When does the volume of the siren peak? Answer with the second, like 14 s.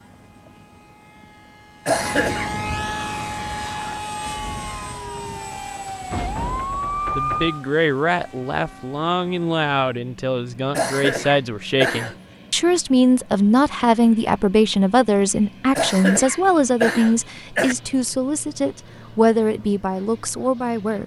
7 s.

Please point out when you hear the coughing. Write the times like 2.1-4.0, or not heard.
1.9-2.5, 10.7-12.2, 15.8-17.8.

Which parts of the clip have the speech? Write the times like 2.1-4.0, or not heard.
7.2-21.0.